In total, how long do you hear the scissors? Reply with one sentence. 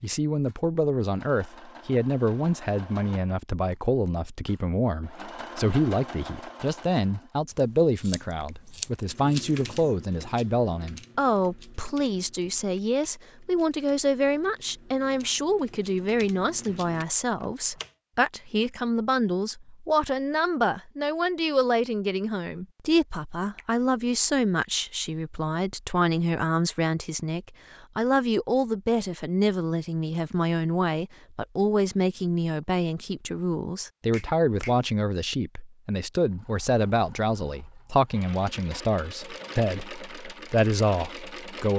The scissors can be heard for 2 seconds in total.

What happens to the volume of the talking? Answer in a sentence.
The volume of the talking stays about the same.